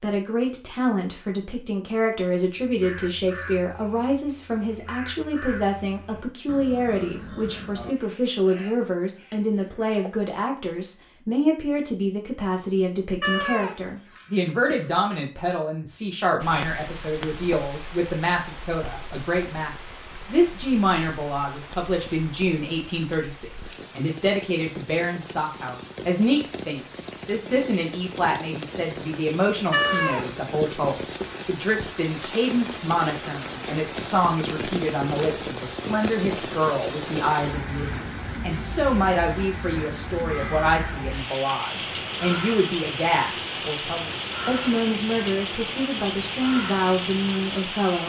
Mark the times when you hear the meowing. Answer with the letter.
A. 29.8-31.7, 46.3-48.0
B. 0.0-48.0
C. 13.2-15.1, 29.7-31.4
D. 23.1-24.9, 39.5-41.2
C.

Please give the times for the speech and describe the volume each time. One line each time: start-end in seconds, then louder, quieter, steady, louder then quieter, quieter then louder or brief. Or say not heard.
0.0-48.0 steady.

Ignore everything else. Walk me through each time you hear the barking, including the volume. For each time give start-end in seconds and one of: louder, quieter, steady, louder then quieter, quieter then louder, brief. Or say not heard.
not heard.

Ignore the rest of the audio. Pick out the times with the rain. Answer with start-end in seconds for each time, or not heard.
16.4-48.0.